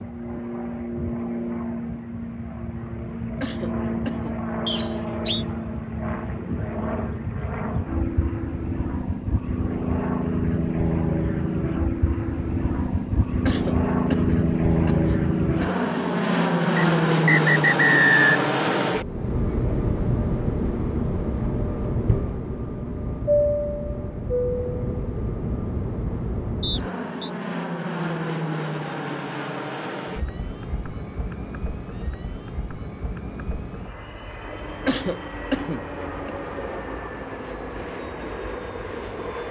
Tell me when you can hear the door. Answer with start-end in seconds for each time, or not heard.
not heard.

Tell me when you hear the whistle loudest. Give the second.
18 s.